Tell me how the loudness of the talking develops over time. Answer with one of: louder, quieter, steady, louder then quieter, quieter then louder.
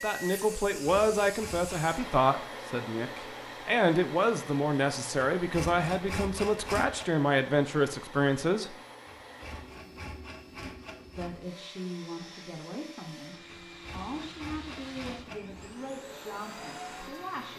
quieter.